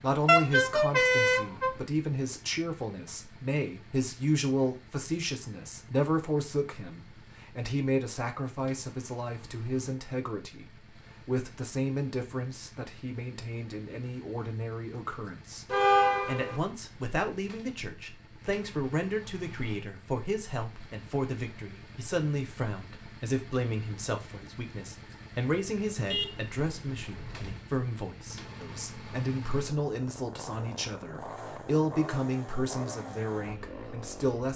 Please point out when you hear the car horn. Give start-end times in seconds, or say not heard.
0.2-1.8, 15.7-16.6, 26.1-27.6.